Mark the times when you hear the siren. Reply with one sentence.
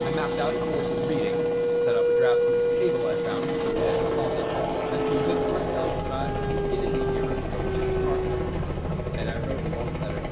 You can hear the siren from 0.0 to 8.4 s.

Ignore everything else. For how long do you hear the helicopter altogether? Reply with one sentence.
You can hear the helicopter for 10 seconds altogether.